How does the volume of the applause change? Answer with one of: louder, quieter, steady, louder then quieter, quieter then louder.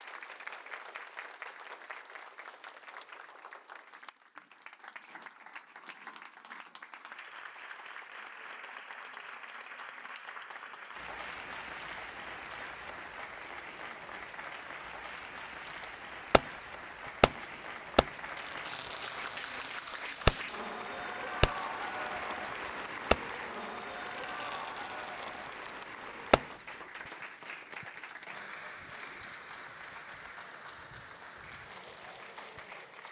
louder then quieter.